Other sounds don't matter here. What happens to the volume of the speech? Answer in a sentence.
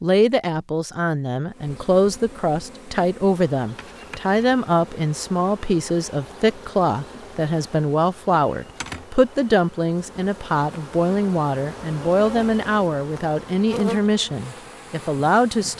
The volume of the speech stays about the same.